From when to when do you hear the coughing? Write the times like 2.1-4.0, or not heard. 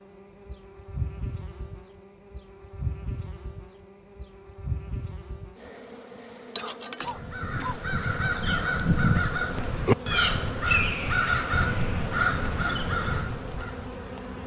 6.5-7.8.